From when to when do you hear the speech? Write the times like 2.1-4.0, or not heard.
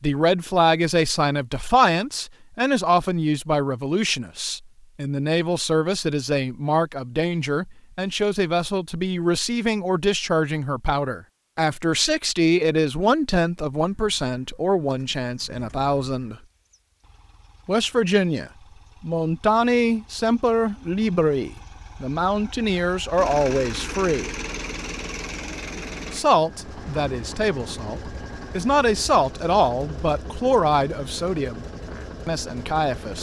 0.0-16.4, 17.6-24.3, 26.1-31.6, 32.2-33.1.